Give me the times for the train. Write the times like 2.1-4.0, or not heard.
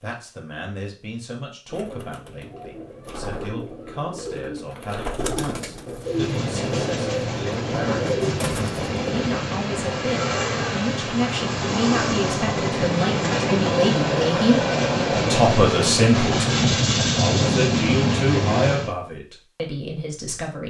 6.0-18.9.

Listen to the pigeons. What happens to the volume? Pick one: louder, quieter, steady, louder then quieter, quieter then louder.
louder.